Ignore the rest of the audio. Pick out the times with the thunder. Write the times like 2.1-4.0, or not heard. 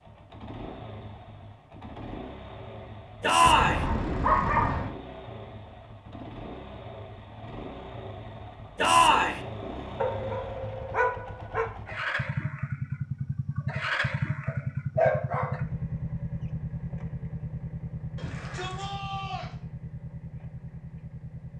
not heard.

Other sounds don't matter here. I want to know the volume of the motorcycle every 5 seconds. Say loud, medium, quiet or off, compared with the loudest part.
medium, medium, loud, loud, medium.